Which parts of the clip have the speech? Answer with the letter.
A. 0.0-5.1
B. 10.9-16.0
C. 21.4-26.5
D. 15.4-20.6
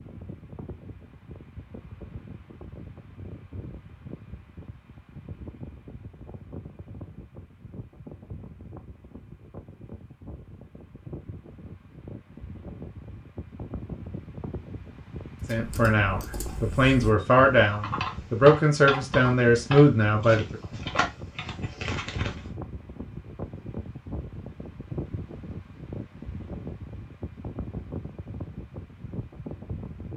D.